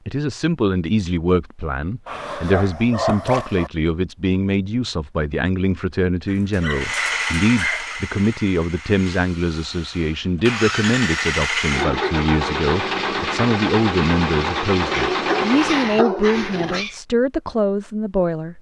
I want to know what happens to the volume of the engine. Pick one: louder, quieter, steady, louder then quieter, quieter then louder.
quieter then louder.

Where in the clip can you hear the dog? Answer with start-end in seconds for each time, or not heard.
2.0-3.7, 6.2-8.0, 14.8-16.9.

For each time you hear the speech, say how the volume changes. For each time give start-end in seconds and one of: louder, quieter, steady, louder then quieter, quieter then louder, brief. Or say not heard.
0.1-18.5 steady.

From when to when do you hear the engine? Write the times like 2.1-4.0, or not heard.
6.7-15.9.